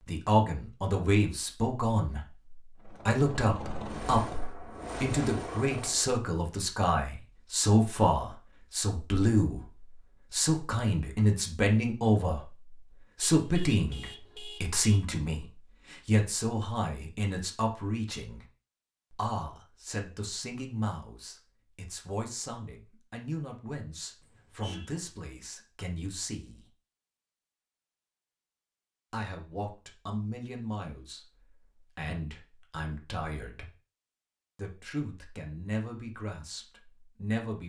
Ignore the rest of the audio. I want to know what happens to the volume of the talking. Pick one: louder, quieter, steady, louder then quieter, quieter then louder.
quieter.